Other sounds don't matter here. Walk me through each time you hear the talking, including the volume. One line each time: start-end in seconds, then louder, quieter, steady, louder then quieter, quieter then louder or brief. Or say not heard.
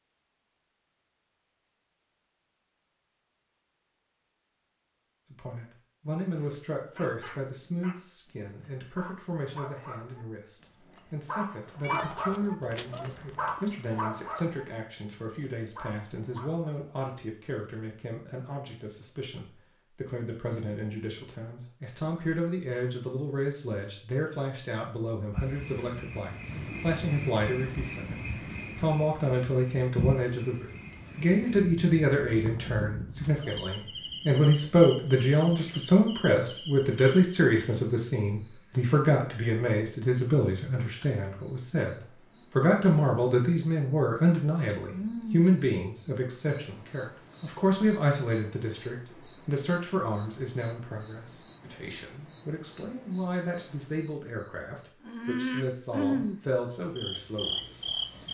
5.3-57.6 louder then quieter.